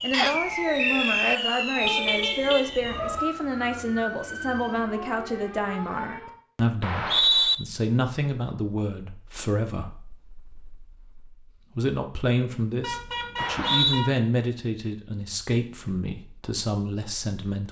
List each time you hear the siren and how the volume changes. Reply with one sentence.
You can hear the siren from 0.0 to 6.3 s, getting quieter.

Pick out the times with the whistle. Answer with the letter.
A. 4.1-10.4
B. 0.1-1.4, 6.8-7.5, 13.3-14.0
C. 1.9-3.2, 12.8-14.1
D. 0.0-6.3
B.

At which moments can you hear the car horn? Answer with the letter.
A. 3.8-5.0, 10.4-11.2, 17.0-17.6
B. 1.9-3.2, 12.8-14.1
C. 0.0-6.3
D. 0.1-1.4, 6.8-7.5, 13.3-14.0
B.